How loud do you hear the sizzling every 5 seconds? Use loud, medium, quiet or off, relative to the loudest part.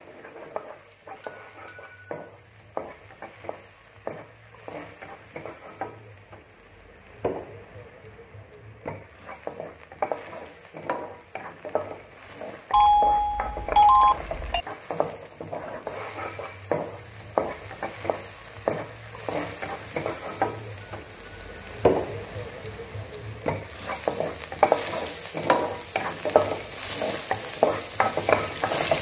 quiet, quiet, medium, medium, loud, loud.